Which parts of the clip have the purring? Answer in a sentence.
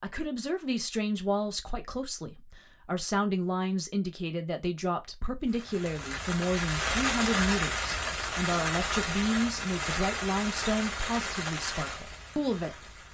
The purring can't be heard in this clip.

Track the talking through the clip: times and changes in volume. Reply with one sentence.
The talking can be heard from 0.0 to 12.9 s, at a steady volume.